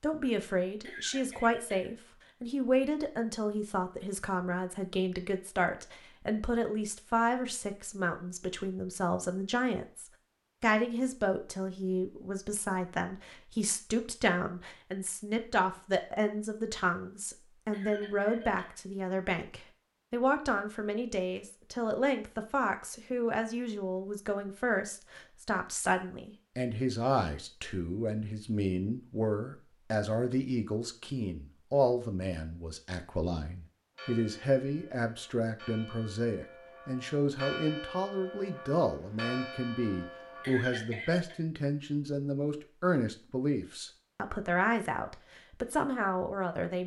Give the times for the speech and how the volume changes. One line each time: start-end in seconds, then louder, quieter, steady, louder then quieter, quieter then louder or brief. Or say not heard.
0.0-46.8 steady.